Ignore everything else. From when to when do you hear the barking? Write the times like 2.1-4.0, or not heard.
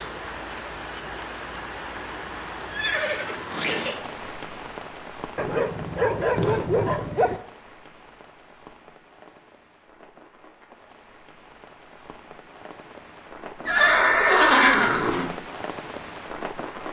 5.3-7.4.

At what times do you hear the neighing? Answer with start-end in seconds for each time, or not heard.
2.7-4.0, 6.3-7.0, 13.7-15.3.